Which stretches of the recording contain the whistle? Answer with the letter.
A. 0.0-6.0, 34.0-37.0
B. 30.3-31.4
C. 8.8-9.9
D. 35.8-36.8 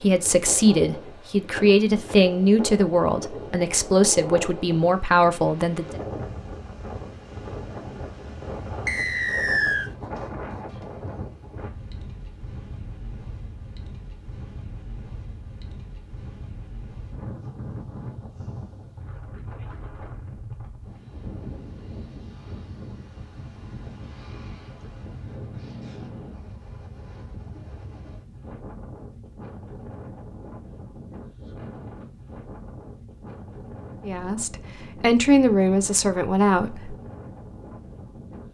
C.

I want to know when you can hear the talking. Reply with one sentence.
The talking can be heard from 0.0 to 6.0 s and from 34.0 to 37.0 s.